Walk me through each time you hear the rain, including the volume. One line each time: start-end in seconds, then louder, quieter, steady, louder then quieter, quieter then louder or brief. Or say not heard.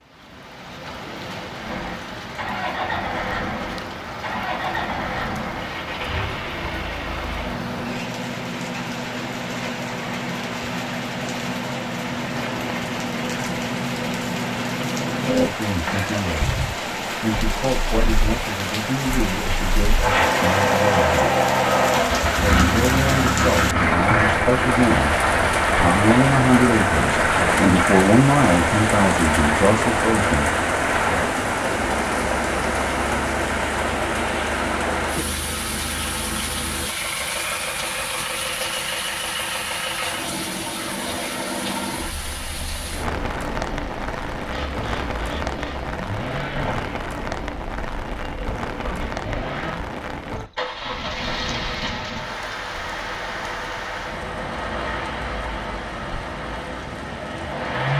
0.0-57.9 louder then quieter.